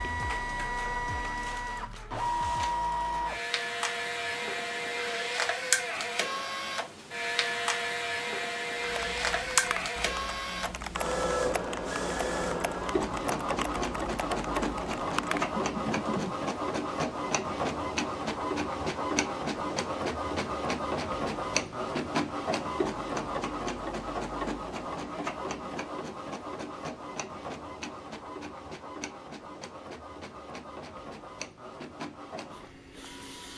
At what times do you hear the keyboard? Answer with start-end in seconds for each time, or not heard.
8.8-16.4.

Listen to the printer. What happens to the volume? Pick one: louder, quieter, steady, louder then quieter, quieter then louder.
quieter.